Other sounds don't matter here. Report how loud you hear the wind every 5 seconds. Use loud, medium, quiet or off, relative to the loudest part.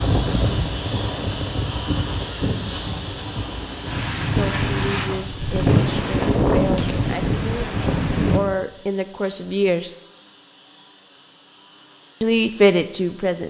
medium, loud, off.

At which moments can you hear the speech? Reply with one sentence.
The speech can be heard from 4.2 to 7.7 s, from 8.3 to 9.9 s and from 12.2 to 13.4 s.